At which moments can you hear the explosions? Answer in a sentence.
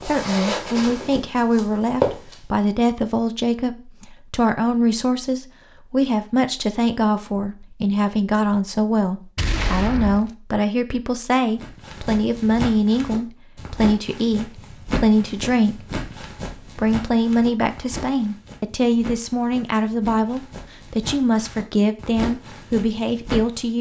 You can hear the explosions from 9.3 to 10.3 s.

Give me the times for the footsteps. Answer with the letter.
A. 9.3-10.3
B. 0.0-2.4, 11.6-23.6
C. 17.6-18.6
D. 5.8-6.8
B.